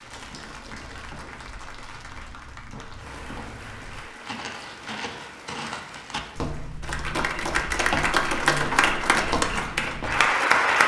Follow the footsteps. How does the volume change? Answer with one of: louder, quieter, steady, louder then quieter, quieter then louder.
louder.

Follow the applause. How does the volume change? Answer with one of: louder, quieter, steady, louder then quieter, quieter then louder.
louder.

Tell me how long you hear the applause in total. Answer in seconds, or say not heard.
11 s.